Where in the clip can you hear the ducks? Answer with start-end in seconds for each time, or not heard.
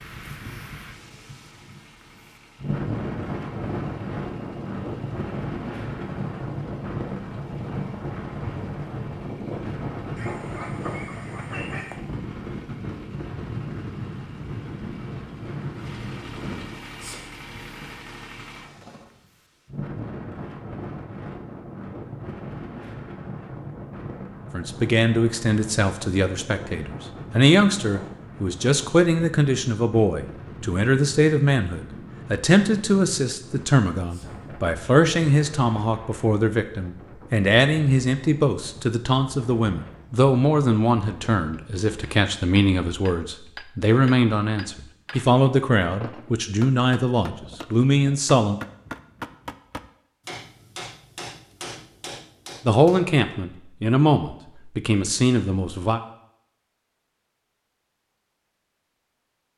10.2-12.0.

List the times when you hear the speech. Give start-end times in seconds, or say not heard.
24.5-48.6, 52.6-56.0.